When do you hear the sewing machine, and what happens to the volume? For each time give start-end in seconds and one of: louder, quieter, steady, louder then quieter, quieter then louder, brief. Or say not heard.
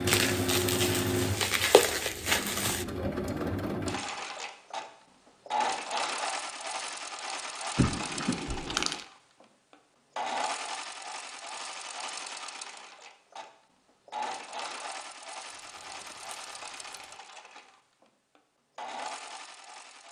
0.0-20.0 quieter.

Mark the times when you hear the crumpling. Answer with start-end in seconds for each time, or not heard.
0.1-2.9, 7.8-9.1, 15.4-17.1.